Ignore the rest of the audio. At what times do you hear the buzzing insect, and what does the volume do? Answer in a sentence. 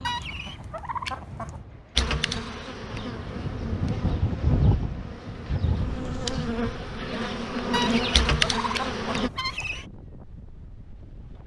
The buzzing insect can be heard from 1.9 to 9.3 s, getting louder.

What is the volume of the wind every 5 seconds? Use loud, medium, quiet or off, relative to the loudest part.
loud, medium, quiet.